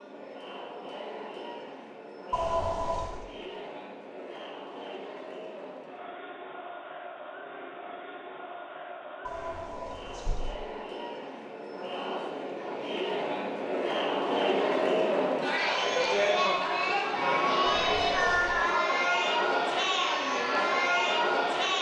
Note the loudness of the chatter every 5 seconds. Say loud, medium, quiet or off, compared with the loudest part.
quiet, quiet, medium, loud, loud.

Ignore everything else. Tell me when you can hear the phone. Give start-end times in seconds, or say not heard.
2.3-3.2, 9.2-10.6, 17.6-18.6.